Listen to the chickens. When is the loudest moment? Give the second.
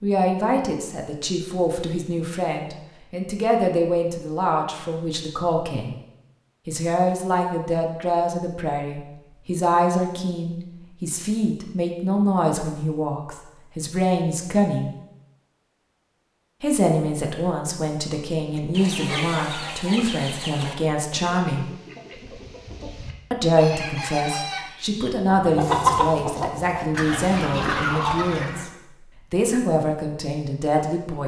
26 s.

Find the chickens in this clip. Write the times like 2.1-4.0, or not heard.
18.6-28.6.